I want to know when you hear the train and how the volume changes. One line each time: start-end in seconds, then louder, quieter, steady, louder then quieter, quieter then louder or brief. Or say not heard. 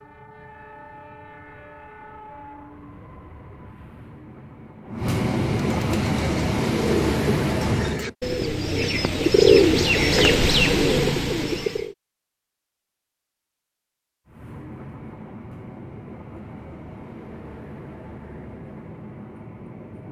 0.0-8.2 louder
14.2-20.0 steady.